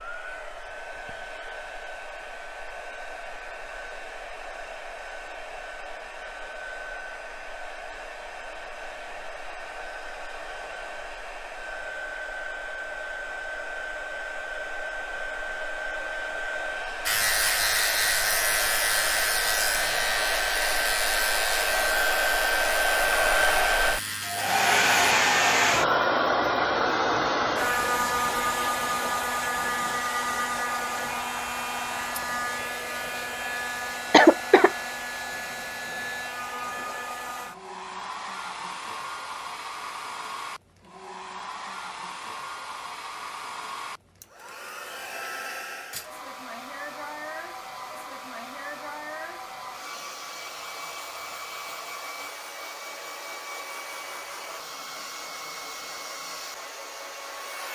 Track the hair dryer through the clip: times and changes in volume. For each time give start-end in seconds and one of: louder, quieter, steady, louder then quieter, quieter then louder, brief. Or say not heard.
0.0-57.7 louder then quieter.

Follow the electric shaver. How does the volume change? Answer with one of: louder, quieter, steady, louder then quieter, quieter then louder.
quieter.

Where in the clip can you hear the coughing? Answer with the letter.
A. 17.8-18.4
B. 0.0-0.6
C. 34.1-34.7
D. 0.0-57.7
C.